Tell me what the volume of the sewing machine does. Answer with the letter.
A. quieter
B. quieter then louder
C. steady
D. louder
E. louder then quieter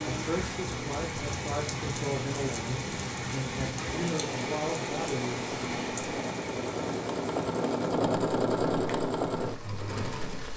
D.